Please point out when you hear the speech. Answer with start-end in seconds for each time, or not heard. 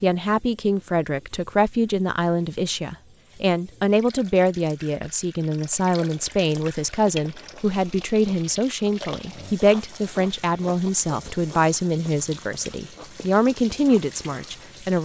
0.0-15.0.